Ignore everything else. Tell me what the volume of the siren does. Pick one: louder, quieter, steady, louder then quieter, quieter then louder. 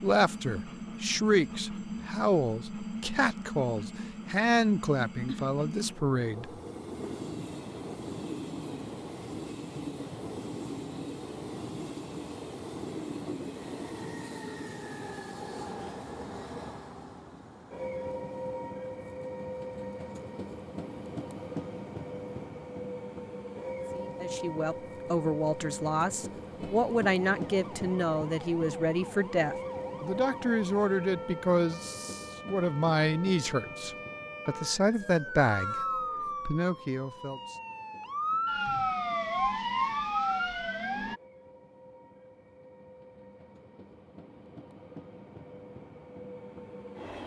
louder.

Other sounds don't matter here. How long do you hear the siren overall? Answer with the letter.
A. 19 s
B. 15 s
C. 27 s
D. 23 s
B.